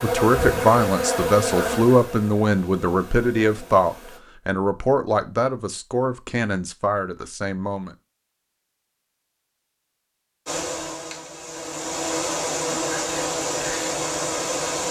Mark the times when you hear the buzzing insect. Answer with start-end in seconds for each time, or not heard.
0.0-4.2, 10.4-14.8.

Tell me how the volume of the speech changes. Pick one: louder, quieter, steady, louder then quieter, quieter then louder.
quieter.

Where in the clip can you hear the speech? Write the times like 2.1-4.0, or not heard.
0.0-8.0.